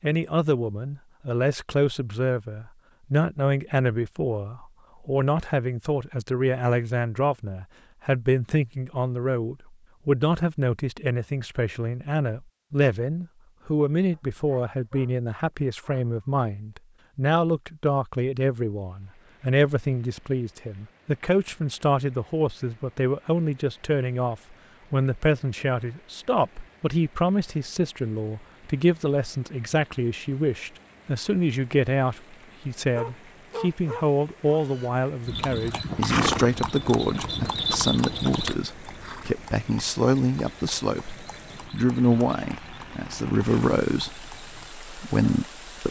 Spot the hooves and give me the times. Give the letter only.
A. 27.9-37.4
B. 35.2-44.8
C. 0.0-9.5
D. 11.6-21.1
B.